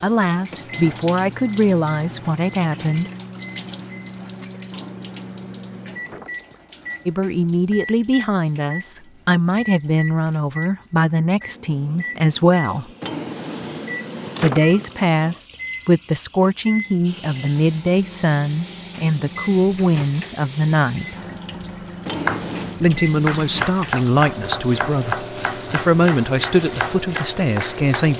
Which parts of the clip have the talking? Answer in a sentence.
The talking can be heard from 0.0 to 3.1 s, from 7.0 to 12.8 s, from 14.4 to 21.1 s and from 22.8 to 28.1 s.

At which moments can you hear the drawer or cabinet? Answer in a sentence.
You can hear the drawer or cabinet from 4.7 to 6.6 s, from 13.0 to 14.9 s and from 22.1 to 22.8 s.